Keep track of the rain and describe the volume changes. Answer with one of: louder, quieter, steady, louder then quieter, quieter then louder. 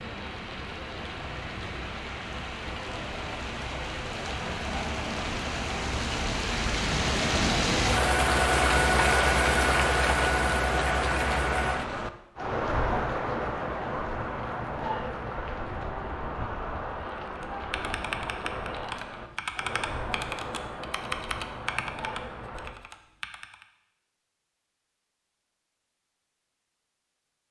louder then quieter.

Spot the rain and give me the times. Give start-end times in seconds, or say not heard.
0.0-22.8.